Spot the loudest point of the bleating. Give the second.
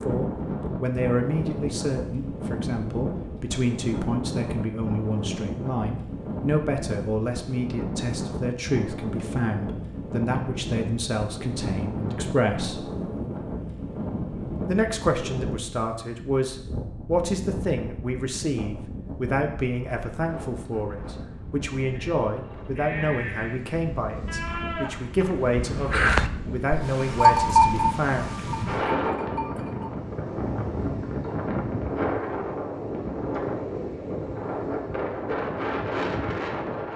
27 s.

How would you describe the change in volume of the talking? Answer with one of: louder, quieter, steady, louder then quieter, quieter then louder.
steady.